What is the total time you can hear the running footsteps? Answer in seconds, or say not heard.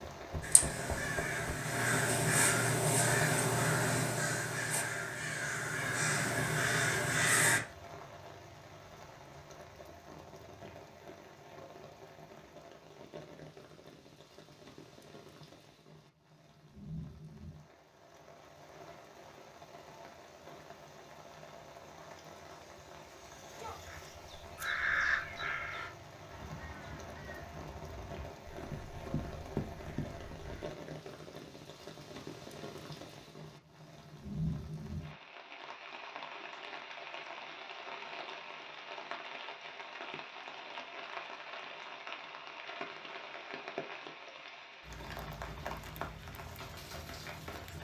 3 s.